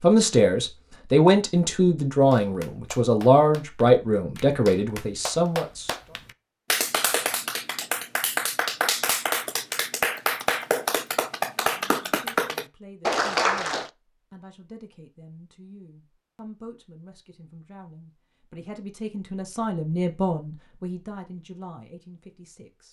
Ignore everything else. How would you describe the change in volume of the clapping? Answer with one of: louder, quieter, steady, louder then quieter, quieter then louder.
louder.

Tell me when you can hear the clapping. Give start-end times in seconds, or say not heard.
2.3-13.9.